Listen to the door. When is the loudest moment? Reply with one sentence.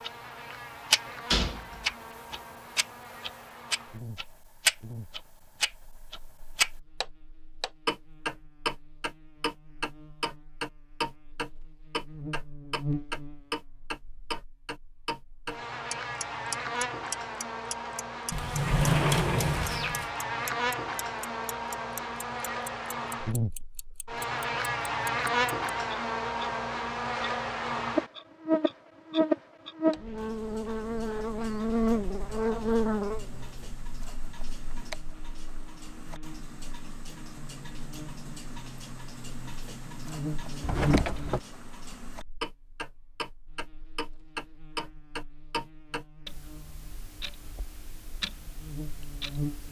The loudest moment of the door is at 19 seconds.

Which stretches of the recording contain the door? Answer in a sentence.
The door can be heard from 1.1 to 1.9 s, from 18.3 to 20.1 s and from 40.6 to 41.4 s.